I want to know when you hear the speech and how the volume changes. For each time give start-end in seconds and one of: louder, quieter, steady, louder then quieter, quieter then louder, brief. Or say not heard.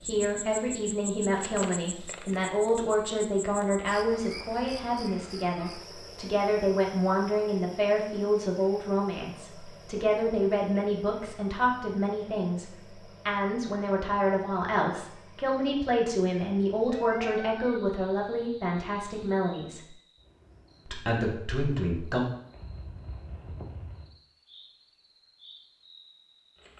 0.0-19.8 steady
20.9-22.2 brief.